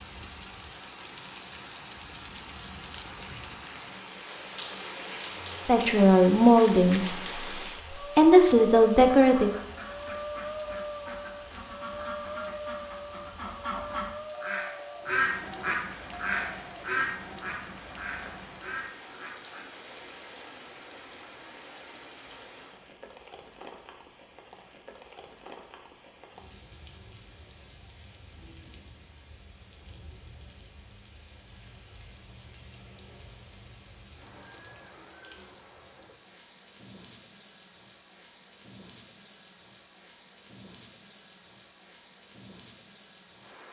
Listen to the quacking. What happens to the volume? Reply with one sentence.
The loudness of the quacking goes up, then down.